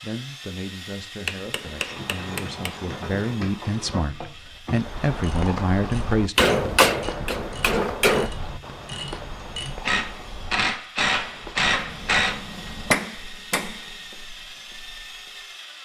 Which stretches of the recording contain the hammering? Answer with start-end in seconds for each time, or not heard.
1.2-2.8, 6.3-8.3, 11.6-13.8.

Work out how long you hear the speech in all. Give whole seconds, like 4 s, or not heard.
6 s.